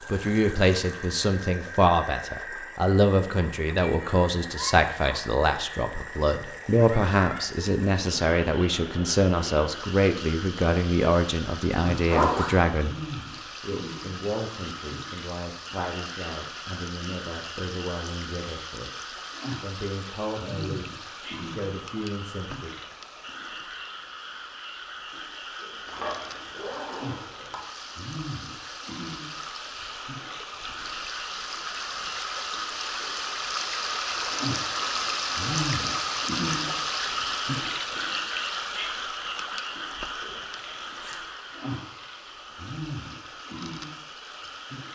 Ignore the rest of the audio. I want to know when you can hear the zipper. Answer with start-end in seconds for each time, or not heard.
12.1-12.6, 25.9-27.6, 40.5-41.2.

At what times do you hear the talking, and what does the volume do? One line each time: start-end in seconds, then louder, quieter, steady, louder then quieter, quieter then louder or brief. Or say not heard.
0.1-22.8 quieter.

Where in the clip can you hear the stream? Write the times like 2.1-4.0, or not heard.
0.0-44.9.